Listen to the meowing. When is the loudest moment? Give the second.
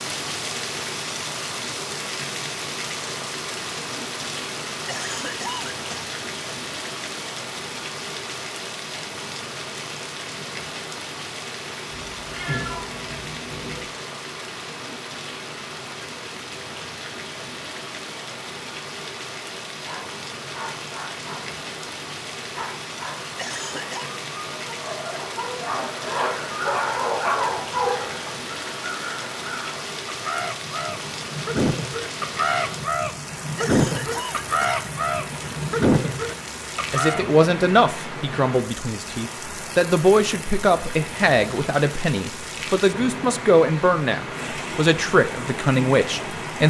13 s.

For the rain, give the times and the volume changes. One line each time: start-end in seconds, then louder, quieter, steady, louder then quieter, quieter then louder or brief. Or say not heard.
0.0-46.6 steady.